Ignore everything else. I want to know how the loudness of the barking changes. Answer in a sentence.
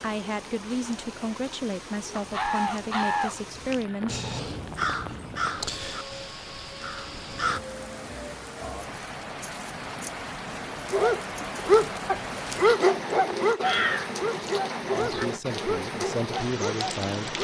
The loudness of the barking goes down.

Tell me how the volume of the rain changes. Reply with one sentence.
The volume of the rain goes up.